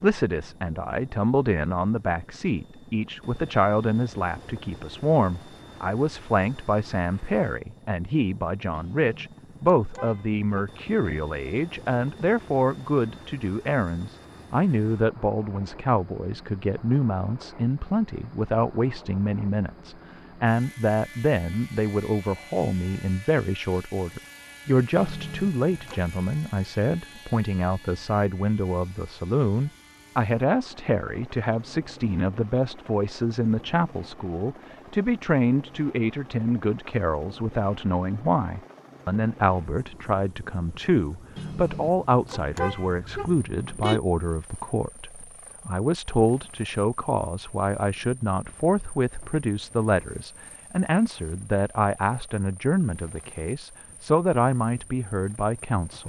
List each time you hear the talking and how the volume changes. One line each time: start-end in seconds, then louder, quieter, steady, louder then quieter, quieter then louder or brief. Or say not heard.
0.0-56.0 steady.